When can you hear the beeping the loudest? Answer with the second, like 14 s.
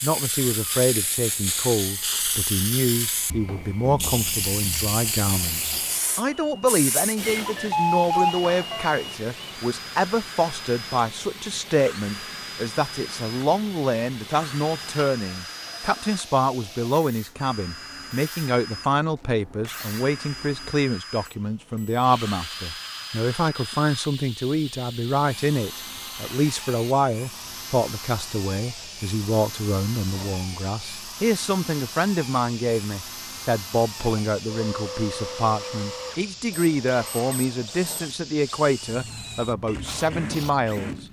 8 s.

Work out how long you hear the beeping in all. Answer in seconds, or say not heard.
4 s.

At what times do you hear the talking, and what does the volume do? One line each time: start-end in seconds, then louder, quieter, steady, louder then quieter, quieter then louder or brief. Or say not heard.
0.0-41.0 steady.